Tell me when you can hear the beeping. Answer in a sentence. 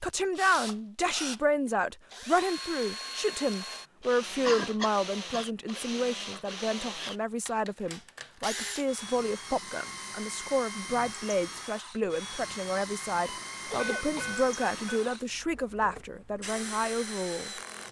You can hear the beeping from 13.2 to 15.2 s.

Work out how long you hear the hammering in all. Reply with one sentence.
You can't hear the hammering here.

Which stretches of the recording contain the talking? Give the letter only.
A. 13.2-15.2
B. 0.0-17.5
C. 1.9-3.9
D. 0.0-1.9
B.